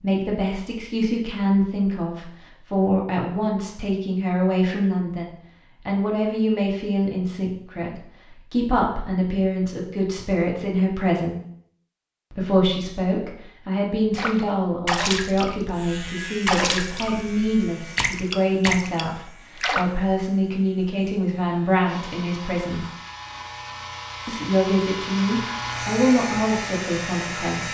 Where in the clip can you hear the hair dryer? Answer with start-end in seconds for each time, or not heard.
21.9-27.6.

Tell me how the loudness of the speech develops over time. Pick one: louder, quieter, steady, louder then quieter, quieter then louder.
steady.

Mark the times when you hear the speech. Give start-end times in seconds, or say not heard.
0.0-11.3, 12.3-22.9, 24.2-27.6.